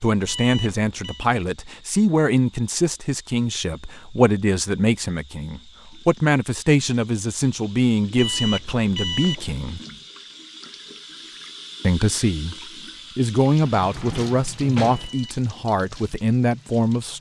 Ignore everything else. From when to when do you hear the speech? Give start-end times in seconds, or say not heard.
0.0-9.8, 11.8-12.6, 13.2-17.1.